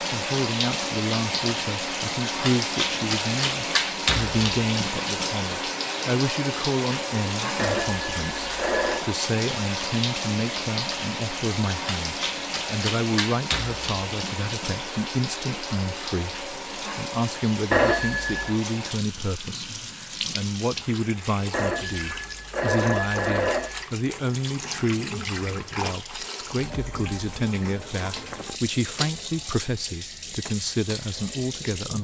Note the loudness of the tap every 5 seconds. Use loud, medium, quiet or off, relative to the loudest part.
loud, loud, loud, medium, medium, medium, medium.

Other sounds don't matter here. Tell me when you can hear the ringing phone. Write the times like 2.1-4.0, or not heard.
7.5-9.1, 17.7-18.5, 21.5-23.9.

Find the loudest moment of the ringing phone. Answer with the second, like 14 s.
18 s.